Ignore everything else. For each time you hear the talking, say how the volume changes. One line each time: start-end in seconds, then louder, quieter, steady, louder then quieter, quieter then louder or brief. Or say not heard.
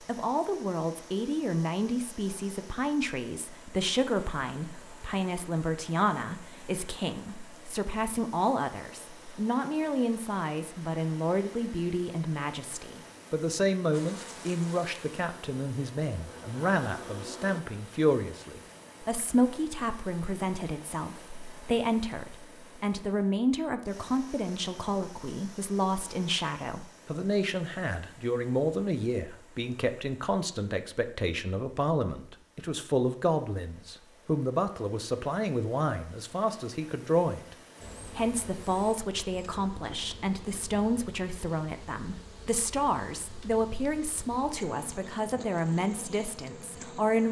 0.1-47.2 steady.